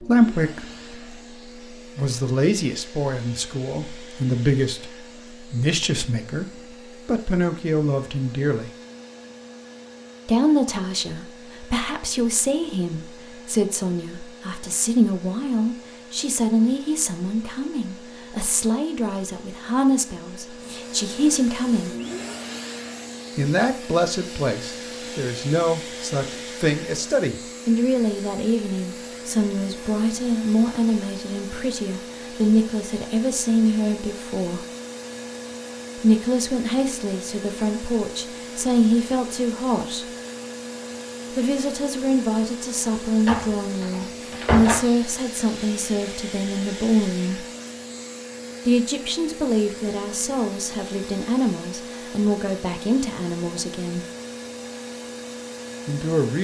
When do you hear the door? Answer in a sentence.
The door can be heard from 43.2 to 44.9 s.